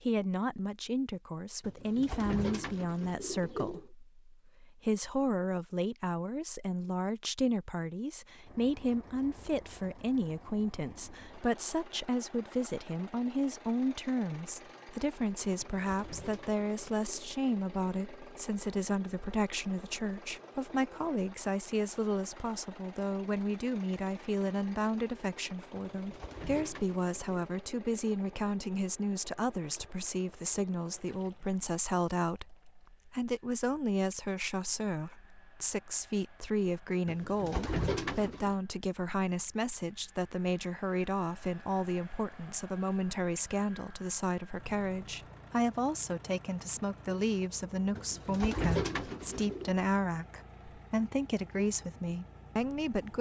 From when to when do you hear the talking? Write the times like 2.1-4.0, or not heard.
0.0-53.1.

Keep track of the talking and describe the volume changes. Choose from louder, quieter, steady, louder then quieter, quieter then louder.
steady.